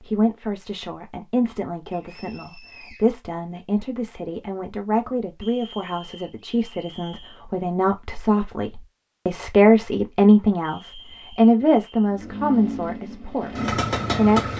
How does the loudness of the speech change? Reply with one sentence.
The volume of the speech goes up.